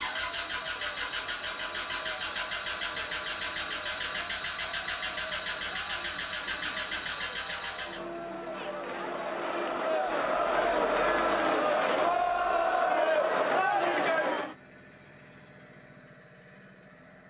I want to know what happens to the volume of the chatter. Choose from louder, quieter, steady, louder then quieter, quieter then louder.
louder.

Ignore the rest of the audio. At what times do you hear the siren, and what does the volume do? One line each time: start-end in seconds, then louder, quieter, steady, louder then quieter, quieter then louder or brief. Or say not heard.
not heard.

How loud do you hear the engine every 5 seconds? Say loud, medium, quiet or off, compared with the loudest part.
loud, loud, quiet, quiet.